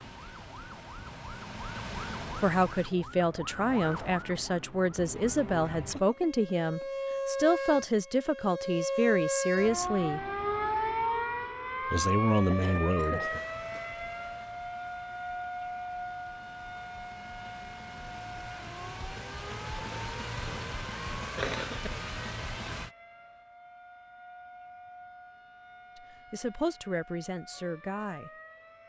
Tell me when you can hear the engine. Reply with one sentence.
The engine can be heard from 0.0 to 3.0 s and from 13.2 to 22.9 s.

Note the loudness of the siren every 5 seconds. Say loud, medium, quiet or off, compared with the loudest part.
medium, loud, loud, medium, quiet, quiet.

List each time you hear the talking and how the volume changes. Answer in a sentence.
The talking can be heard from 2.4 to 10.2 s, at a steady volume; briefly from 11.9 to 13.4 s; and briefly from 25.9 to 28.3 s.